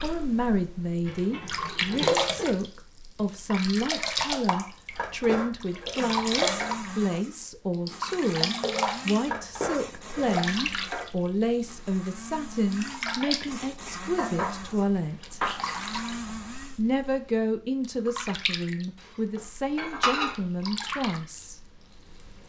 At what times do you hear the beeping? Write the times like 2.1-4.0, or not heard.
not heard.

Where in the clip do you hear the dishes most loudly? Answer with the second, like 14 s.
20 s.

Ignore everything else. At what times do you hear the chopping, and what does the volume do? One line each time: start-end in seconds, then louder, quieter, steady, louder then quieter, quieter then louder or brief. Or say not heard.
not heard.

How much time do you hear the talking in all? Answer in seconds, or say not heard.
20 s.